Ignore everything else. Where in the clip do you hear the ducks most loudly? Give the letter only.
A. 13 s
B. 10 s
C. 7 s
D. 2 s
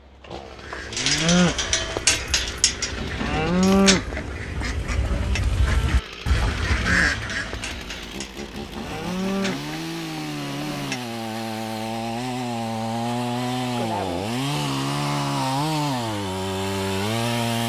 C.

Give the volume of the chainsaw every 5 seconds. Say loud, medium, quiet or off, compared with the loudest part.
quiet, medium, loud, loud.